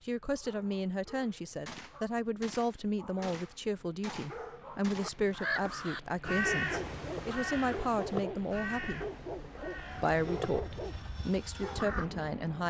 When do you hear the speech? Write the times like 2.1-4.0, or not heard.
0.1-9.1, 9.9-12.6.